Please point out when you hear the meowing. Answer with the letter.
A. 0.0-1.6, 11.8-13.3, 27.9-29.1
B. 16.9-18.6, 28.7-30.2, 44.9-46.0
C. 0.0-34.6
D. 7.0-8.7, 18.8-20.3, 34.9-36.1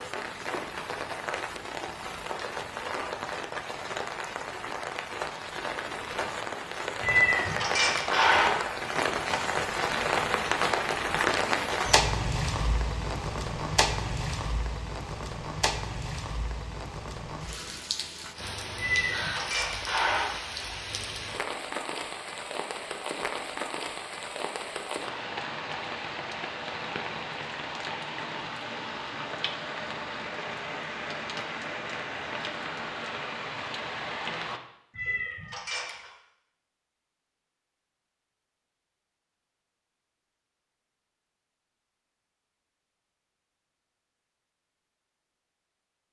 D.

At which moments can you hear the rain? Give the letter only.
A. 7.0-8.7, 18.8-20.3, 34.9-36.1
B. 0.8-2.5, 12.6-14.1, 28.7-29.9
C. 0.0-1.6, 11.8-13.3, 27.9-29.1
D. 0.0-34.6
D.